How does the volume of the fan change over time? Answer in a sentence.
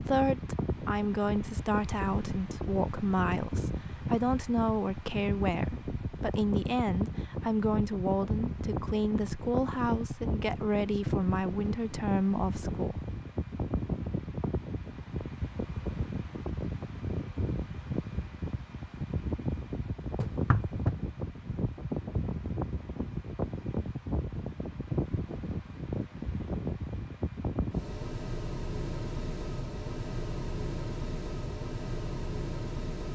The loudness of the fan stays about the same.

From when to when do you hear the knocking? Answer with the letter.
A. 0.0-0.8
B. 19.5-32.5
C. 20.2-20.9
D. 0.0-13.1
C.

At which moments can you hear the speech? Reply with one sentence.
The speech can be heard from 0.0 to 13.1 s.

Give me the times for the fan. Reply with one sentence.
The fan can be heard from 0.0 to 33.1 s.